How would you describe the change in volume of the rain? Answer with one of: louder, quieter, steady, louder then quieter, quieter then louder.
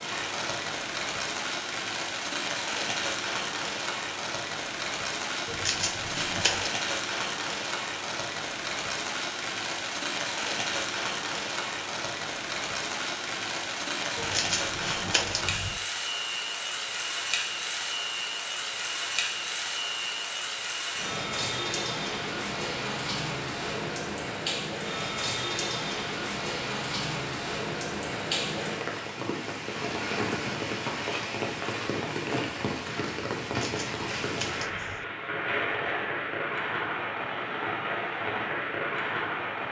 steady.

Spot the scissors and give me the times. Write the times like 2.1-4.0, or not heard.
5.5-6.7, 14.2-15.8, 33.5-35.0.